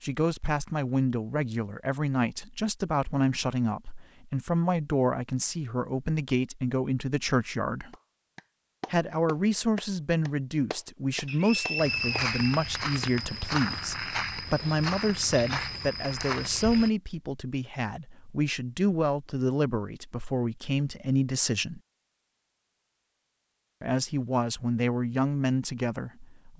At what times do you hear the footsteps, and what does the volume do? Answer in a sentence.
The footsteps can be heard from 11.8 to 16.9 s, at a steady volume.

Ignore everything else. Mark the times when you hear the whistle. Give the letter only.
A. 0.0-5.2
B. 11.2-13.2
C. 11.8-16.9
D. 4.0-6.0
B.